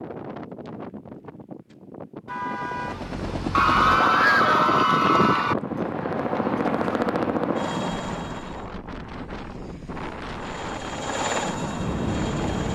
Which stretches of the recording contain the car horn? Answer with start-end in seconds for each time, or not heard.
2.2-3.6.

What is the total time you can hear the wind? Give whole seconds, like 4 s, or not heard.
13 s.